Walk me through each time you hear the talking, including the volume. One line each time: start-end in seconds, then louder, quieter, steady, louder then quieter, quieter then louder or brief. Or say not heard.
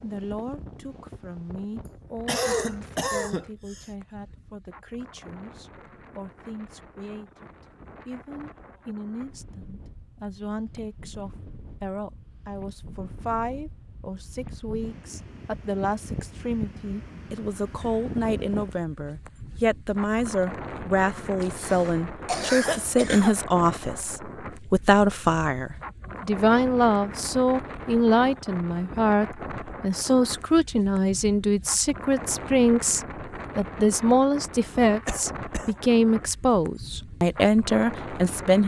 0.0-38.6 louder.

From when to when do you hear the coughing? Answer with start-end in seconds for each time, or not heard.
1.9-3.9, 21.4-23.4, 35.0-35.8.